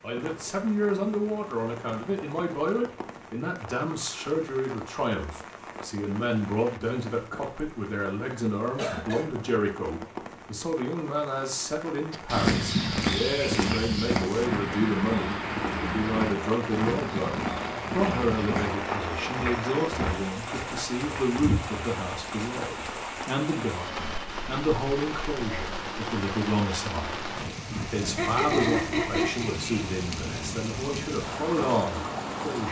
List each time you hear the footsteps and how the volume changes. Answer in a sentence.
You can hear the footsteps from 12.1 to 21.9 s, getting quieter.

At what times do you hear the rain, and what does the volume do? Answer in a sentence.
The rain can be heard from 0.0 to 32.6 s, getting louder.